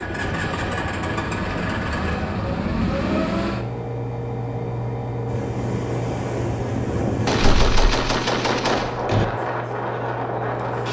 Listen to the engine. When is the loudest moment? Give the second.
3 s.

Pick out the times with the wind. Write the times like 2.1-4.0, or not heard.
5.2-10.8.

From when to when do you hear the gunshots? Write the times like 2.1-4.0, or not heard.
7.2-9.2.